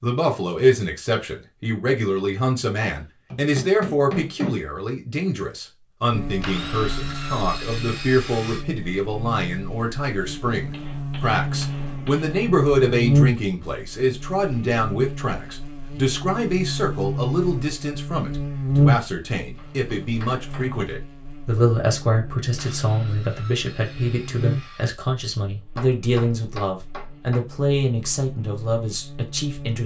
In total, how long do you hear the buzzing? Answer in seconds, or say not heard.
24 s.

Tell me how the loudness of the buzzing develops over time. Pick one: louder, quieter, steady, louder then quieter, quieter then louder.
louder then quieter.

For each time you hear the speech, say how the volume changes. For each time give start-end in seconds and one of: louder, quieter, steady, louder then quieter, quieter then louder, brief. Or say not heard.
0.0-29.8 steady.